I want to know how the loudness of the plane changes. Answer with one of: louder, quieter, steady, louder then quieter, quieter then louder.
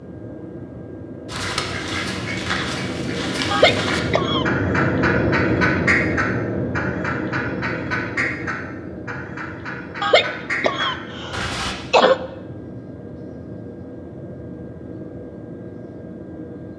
louder then quieter.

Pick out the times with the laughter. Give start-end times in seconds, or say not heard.
3.5-4.5, 10.0-12.2.